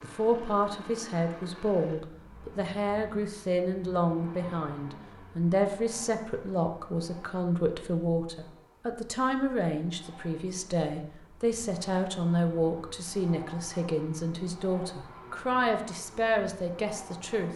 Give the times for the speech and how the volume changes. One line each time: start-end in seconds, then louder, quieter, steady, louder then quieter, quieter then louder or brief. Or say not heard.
0.0-17.5 steady.